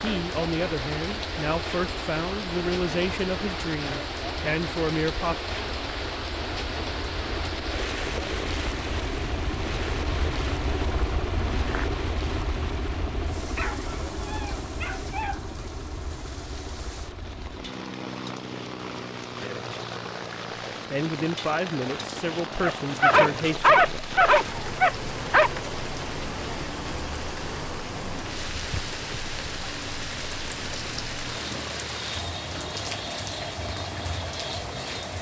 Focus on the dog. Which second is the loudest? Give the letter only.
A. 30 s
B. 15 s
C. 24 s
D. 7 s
C.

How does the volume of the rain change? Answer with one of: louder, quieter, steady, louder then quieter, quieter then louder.
quieter then louder.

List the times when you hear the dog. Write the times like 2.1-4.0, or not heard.
13.6-15.5, 22.6-25.5.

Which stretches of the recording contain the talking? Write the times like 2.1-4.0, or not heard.
0.0-5.3, 20.9-24.0.